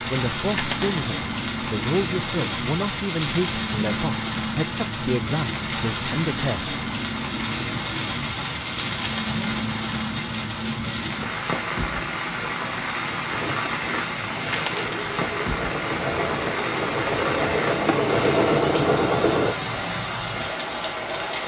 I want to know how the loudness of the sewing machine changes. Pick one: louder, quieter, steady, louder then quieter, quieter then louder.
louder.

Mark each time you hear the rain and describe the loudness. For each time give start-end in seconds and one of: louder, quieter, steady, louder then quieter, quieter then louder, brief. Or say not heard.
0.0-21.4 steady.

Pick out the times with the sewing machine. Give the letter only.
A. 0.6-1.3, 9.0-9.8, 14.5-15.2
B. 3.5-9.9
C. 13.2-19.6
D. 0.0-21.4
C.